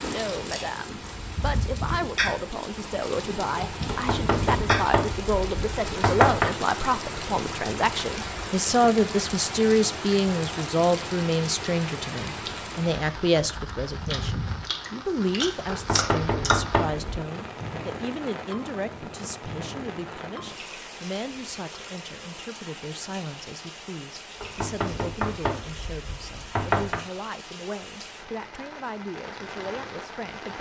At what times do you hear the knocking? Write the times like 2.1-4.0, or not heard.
3.9-6.5, 15.7-17.1, 24.4-27.0.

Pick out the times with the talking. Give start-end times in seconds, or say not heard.
0.0-30.5.